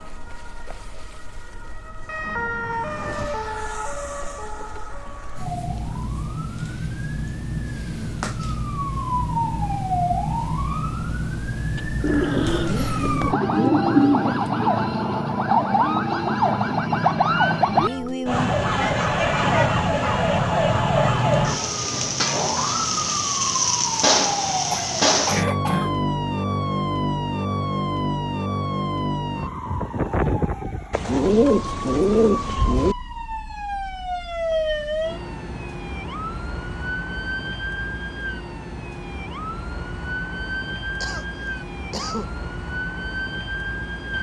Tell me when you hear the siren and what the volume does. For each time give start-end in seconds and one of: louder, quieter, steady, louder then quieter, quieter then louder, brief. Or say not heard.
0.0-44.1 louder then quieter.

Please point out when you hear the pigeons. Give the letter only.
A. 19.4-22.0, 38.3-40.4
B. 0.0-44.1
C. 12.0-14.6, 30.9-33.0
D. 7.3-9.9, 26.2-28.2
C.